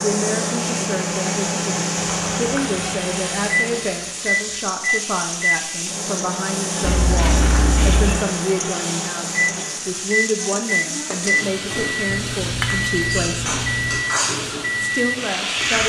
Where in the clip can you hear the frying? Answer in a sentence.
The frying can be heard from 0.0 to 15.8 s.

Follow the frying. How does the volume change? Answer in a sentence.
The volume of the frying stays about the same.